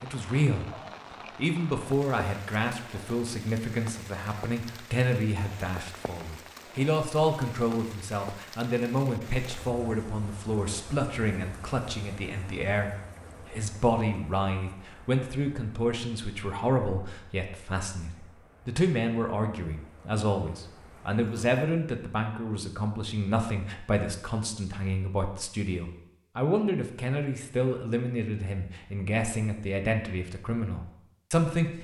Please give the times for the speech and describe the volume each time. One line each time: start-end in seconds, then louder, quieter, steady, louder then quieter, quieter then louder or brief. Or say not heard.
0.0-0.7 brief
1.4-31.7 steady.